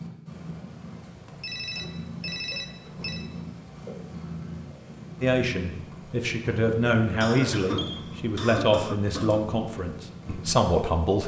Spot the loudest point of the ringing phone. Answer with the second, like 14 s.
2 s.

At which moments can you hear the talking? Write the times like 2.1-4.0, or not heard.
5.2-11.2.